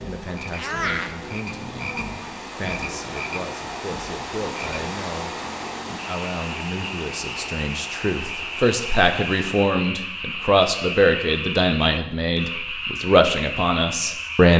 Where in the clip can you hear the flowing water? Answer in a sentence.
You can hear the flowing water from 0.0 to 9.6 s.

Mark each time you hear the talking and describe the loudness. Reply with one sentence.
The talking can be heard from 0.0 to 14.5 s, getting louder.